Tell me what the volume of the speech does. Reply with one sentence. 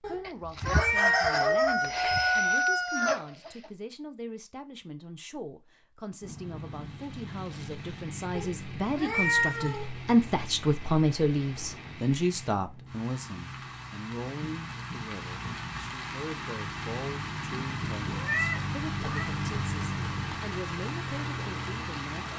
The volume of the speech goes up, then down.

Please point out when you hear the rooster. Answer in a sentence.
The rooster can be heard from 0.2 to 3.7 s.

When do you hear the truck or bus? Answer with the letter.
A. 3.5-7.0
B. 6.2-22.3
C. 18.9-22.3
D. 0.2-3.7
B.